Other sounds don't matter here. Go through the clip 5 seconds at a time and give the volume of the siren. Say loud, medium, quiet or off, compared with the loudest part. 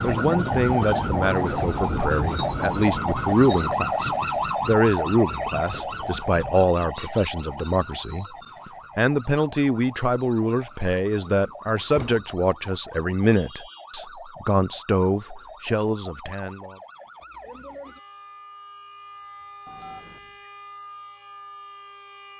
loud, medium, quiet, quiet, quiet.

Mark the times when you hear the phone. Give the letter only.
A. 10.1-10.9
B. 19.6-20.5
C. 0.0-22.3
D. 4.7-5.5
B.